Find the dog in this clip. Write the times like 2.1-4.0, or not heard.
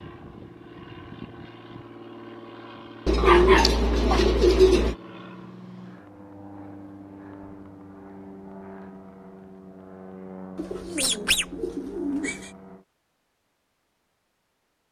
3.1-4.2.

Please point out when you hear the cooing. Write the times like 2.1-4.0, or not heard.
3.0-5.0, 10.6-12.5.